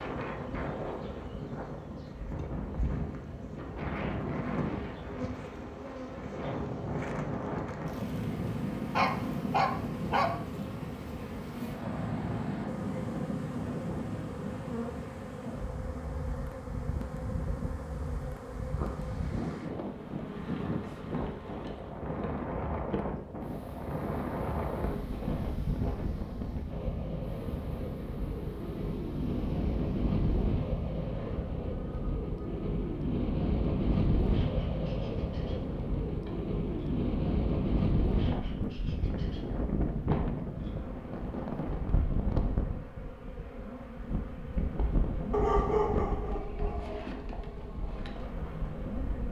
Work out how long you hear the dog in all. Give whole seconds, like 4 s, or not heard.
3 s.